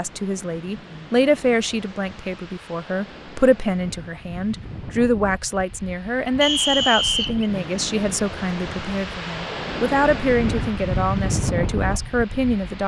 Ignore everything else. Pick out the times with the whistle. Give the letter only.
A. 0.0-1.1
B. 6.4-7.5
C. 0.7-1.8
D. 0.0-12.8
B.